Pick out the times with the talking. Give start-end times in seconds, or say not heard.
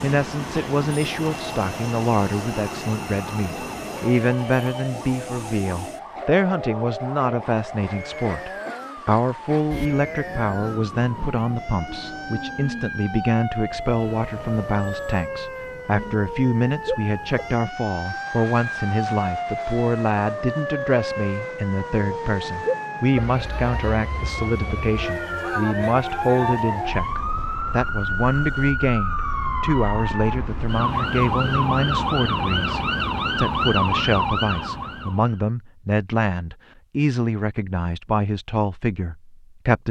0.0-39.8.